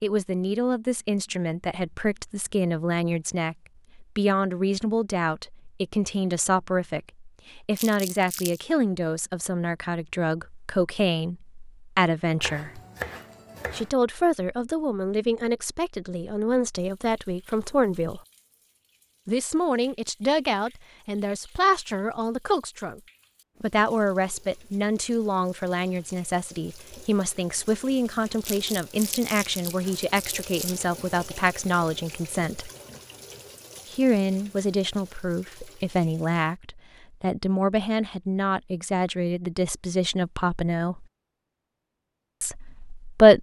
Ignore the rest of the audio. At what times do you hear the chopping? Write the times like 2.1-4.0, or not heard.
12.4-13.9.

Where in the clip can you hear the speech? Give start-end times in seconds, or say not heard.
0.0-12.8, 13.7-18.2, 19.2-23.0, 23.6-32.7, 33.9-41.0, 42.4-43.3.